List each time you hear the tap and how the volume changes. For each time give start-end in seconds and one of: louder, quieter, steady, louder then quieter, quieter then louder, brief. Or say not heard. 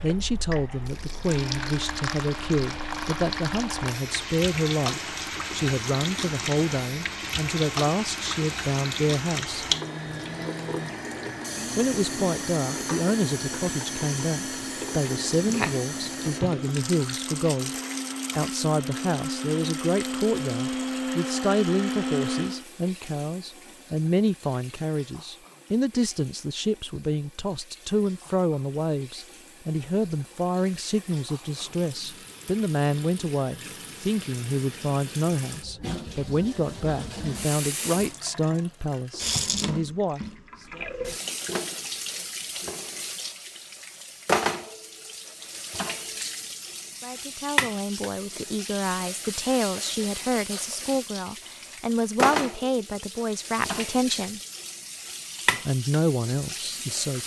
0.0-57.2 quieter then louder.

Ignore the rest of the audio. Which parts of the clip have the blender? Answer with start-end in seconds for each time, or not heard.
0.0-22.6.